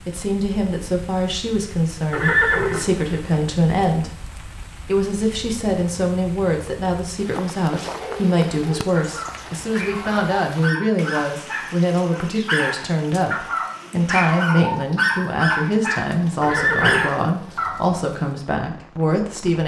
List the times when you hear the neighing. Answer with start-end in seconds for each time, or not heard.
2.1-3.4, 16.4-17.1.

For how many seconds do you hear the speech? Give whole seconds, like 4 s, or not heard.
19 s.